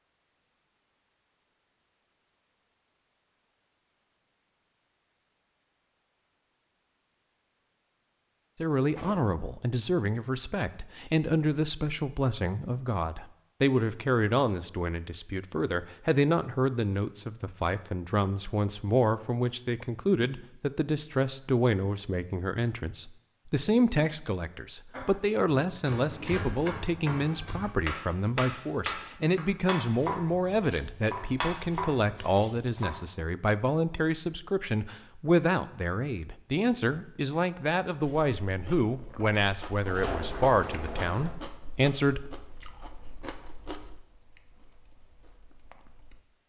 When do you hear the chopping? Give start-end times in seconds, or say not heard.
24.9-33.0.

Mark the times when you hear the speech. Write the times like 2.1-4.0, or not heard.
8.6-42.4.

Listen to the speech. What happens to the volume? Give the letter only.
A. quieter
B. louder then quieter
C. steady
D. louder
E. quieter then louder
C.